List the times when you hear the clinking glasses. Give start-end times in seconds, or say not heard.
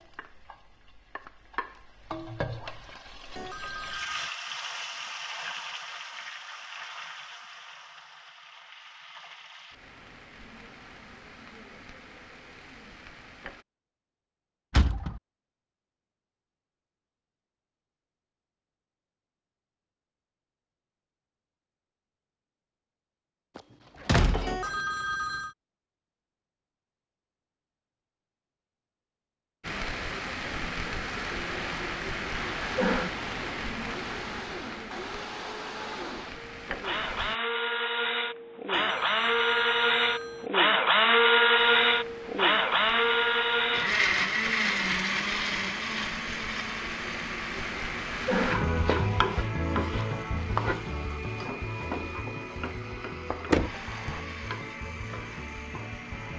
not heard.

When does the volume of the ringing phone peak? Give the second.
25 s.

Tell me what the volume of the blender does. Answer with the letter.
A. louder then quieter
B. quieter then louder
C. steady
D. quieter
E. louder
A.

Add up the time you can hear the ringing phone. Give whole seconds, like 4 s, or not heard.
4 s.